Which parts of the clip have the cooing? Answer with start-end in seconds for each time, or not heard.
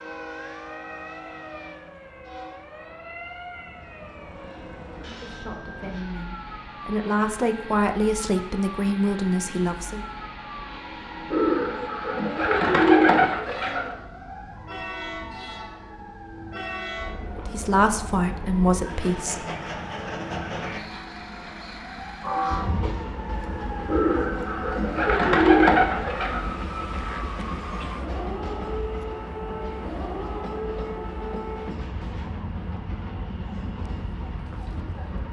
11.3-13.9, 23.9-26.4.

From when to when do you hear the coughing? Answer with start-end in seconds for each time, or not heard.
not heard.